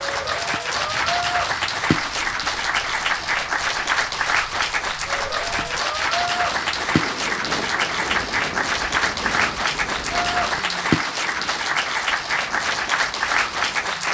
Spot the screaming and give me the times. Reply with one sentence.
You can't hear the screaming here.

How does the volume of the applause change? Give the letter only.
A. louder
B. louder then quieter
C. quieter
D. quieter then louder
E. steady
E.